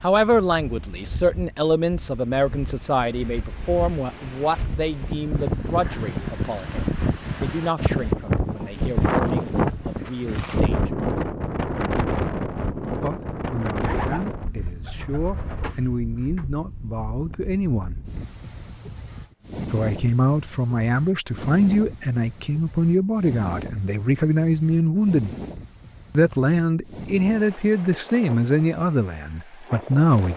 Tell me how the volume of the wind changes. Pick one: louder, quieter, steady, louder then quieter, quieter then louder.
louder then quieter.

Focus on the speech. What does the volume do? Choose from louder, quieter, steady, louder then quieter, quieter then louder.
quieter then louder.